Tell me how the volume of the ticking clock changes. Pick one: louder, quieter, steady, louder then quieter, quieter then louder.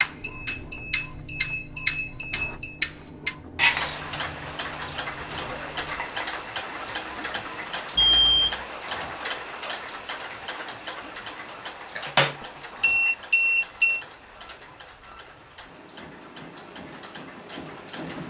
quieter.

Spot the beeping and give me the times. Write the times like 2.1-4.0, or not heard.
0.2-2.8, 8.0-8.6, 12.8-14.1.